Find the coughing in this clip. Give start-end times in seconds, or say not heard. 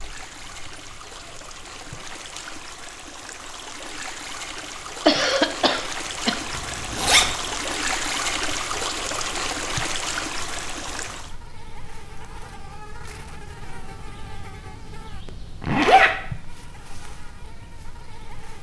5.0-6.3.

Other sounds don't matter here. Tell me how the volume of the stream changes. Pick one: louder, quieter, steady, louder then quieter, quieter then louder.
louder.